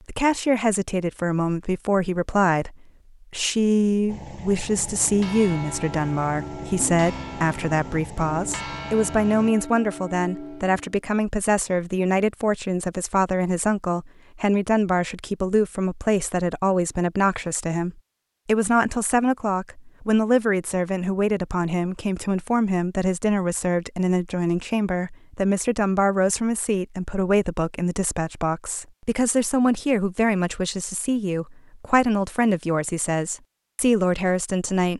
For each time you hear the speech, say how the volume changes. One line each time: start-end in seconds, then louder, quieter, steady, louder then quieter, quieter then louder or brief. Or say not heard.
0.1-34.9 steady.